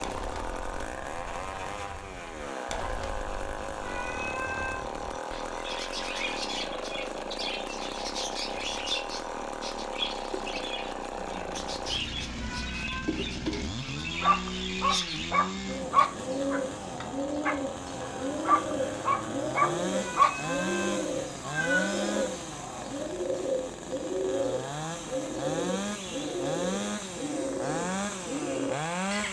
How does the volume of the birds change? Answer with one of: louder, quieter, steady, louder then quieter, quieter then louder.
louder.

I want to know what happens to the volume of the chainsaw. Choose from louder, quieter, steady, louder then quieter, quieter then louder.
steady.